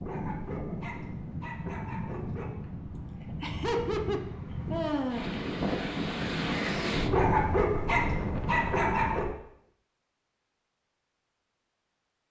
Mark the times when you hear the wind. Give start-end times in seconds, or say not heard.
0.0-9.3.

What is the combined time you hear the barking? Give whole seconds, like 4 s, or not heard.
5 s.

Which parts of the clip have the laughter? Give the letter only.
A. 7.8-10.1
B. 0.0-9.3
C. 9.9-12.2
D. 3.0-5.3
D.